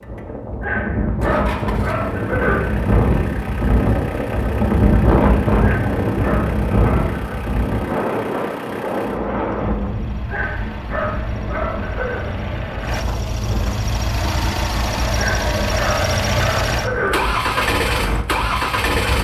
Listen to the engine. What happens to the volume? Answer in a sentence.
The loudness of the engine goes up.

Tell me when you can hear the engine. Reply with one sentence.
The engine can be heard from 0.0 to 19.1 s.